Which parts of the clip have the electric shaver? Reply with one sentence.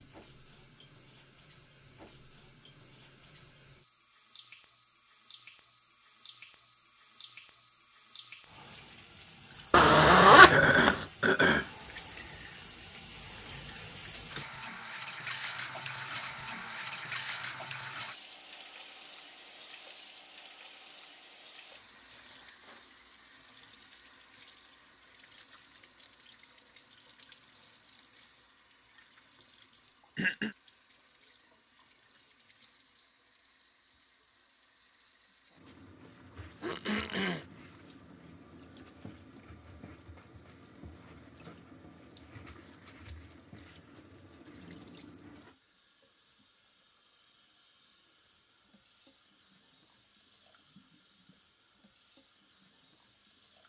You can't hear the electric shaver here.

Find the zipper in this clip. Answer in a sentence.
The zipper can be heard from 9.7 to 11.1 s.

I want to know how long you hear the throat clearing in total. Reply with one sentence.
You can hear the throat clearing for 3 seconds altogether.